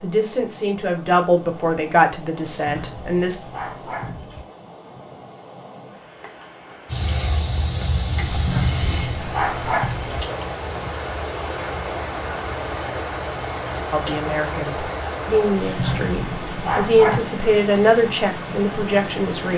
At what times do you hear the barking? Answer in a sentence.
The barking can be heard from 2.5 to 4.5 s, from 8.3 to 10.2 s and from 15.6 to 17.2 s.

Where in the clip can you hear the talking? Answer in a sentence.
You can hear the talking from 0.0 to 3.4 s and from 13.9 to 19.5 s.